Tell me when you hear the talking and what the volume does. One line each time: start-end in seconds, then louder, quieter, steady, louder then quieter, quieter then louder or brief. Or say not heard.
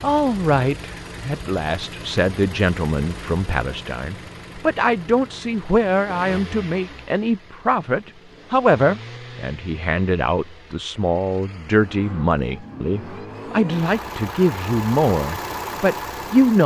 0.0-16.6 steady.